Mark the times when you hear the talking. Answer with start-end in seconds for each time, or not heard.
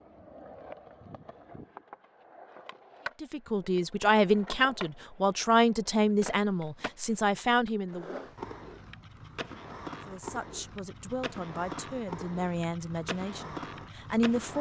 3.2-8.2, 10.1-14.5.